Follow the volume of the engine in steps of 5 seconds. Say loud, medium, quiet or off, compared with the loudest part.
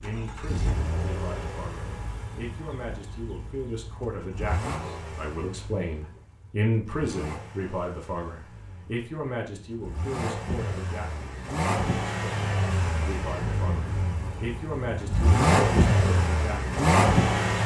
quiet, quiet, medium, loud.